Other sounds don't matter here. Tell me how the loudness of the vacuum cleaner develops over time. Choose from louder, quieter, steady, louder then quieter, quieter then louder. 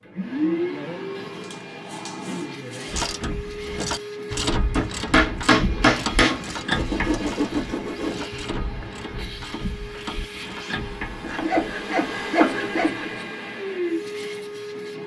quieter then louder.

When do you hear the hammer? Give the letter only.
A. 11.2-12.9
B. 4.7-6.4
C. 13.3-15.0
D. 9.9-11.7
B.